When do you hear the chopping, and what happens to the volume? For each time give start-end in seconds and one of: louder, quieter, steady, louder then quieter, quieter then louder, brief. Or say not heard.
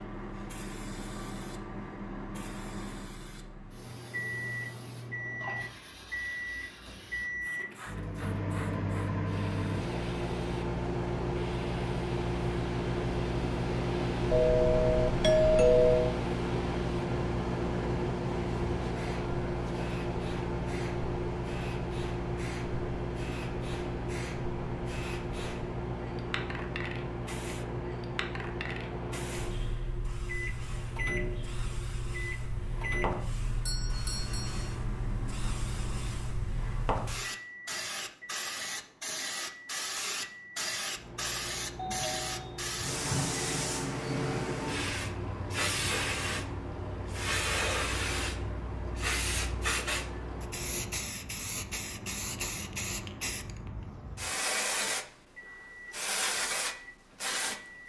not heard.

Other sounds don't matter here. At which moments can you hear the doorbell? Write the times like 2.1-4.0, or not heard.
14.3-16.1, 33.6-34.8, 41.8-43.3.